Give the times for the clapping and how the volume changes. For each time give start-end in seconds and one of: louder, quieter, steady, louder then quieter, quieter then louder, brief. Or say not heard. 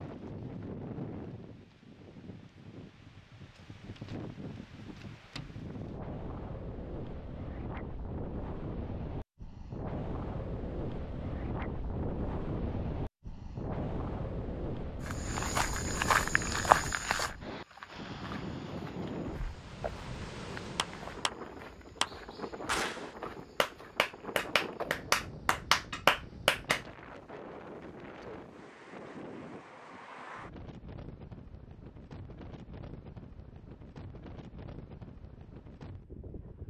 20.8-21.3 brief
22.0-26.8 louder.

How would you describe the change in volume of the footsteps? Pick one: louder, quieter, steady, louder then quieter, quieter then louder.
quieter.